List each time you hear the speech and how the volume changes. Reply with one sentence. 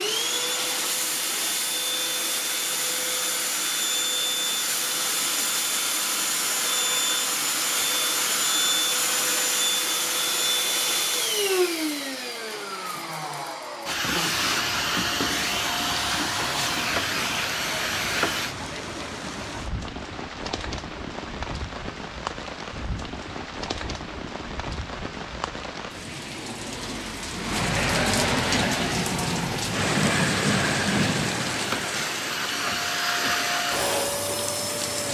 You can't hear the speech here.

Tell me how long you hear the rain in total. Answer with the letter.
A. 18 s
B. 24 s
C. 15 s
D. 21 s
D.